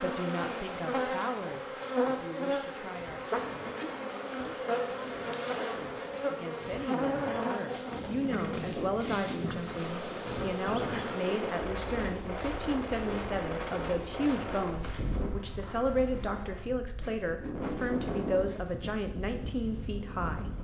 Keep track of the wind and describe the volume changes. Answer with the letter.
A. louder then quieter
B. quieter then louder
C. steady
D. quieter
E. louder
E.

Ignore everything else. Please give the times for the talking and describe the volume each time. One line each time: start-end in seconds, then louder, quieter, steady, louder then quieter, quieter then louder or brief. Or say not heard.
0.0-20.5 louder.